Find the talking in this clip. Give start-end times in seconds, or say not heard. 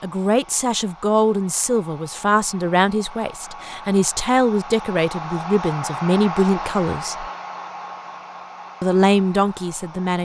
0.0-7.2, 8.8-10.1.